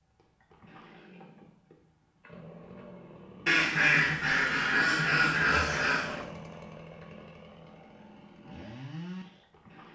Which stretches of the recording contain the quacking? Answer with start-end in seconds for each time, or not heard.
3.5-6.2.